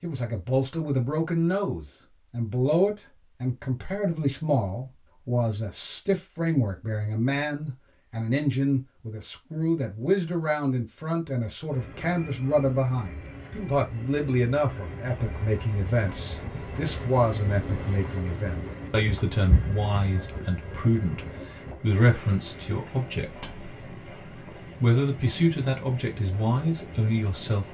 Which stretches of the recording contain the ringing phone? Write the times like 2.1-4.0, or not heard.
19.3-21.8.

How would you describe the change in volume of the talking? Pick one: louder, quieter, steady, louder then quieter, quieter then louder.
steady.